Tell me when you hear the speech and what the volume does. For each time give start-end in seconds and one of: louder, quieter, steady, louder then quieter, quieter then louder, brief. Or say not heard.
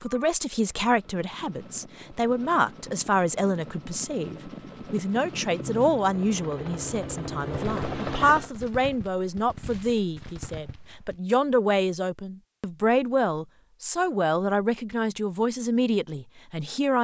0.0-16.9 steady.